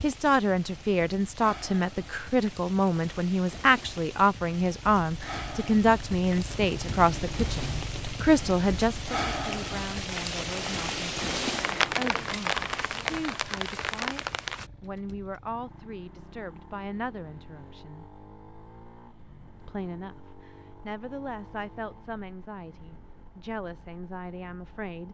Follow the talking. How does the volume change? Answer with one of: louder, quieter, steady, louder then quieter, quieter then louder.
quieter.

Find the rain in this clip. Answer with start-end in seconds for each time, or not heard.
0.0-14.7.